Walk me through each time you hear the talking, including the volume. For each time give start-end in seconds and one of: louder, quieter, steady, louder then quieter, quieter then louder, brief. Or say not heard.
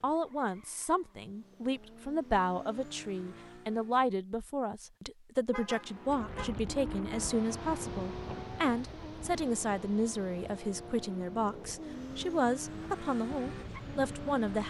0.0-14.6 steady.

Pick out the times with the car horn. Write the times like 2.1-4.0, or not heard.
5.5-6.6.